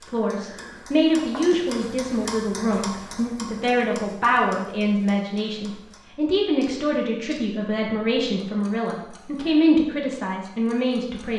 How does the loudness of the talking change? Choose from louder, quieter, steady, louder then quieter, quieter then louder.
steady.